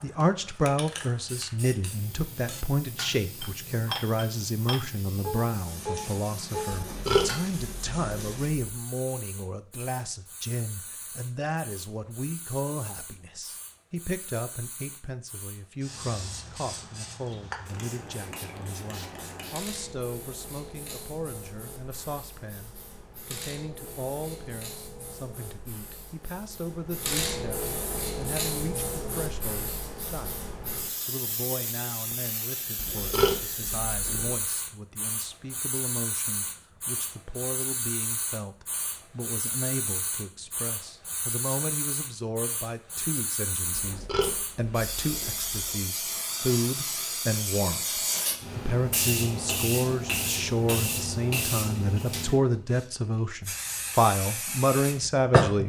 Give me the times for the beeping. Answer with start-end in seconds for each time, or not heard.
not heard.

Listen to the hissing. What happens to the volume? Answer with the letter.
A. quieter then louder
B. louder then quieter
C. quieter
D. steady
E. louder
E.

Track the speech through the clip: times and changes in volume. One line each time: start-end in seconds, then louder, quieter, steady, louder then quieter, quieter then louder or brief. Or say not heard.
0.0-30.4 quieter
31.1-55.6 louder.